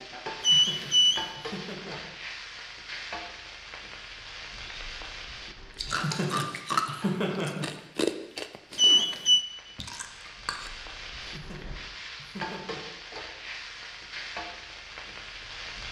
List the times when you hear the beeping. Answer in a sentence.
You can hear the beeping from 0.4 to 1.2 s and from 8.8 to 9.4 s.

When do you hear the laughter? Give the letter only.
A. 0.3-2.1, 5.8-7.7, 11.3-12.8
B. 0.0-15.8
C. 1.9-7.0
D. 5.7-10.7
A.